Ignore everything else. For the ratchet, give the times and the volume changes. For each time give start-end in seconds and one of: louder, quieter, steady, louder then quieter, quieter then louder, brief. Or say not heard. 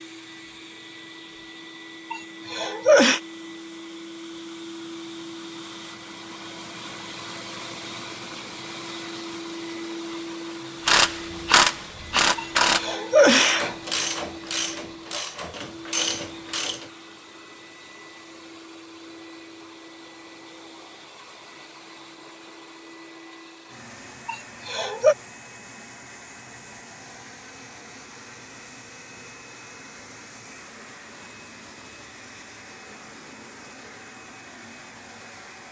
10.8-16.9 quieter.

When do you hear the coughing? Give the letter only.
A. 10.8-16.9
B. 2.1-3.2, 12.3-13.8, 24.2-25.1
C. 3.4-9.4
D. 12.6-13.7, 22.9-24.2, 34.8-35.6
B.